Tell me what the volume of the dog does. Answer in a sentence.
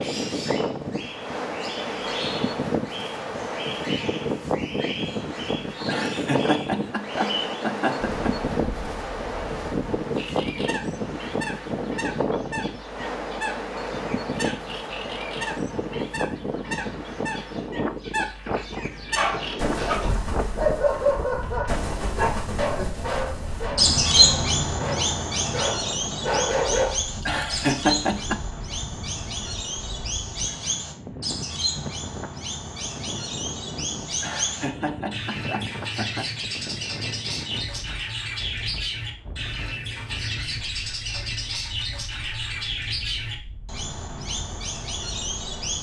The loudness of the dog goes down, then up.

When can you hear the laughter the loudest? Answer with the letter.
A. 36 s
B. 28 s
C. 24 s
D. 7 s
B.